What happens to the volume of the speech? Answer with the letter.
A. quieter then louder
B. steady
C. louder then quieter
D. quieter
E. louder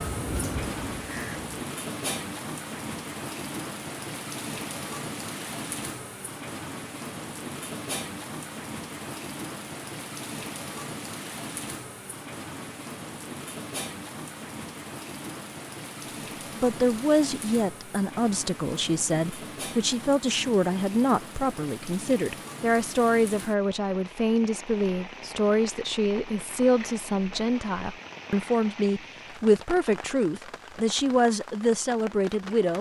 B.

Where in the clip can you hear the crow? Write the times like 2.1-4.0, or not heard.
0.0-1.5.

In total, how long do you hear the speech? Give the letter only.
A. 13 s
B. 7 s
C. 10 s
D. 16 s
D.